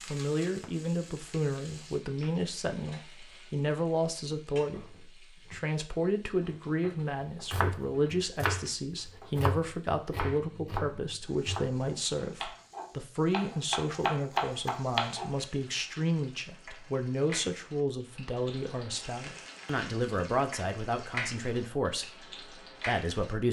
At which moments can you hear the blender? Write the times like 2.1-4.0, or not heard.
not heard.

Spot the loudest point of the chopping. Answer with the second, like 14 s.
14 s.